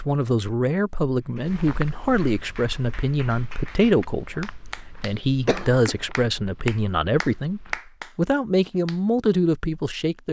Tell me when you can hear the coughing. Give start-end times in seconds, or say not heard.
5.5-6.0.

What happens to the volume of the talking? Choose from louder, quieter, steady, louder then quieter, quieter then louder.
steady.